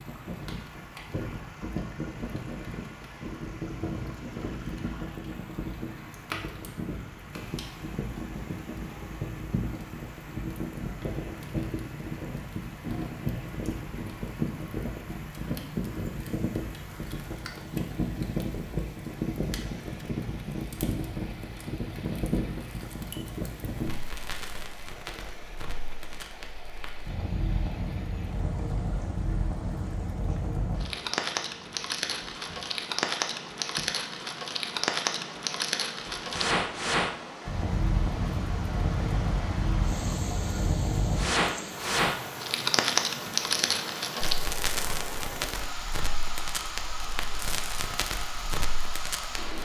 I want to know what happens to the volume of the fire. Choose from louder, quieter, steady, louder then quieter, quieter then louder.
louder.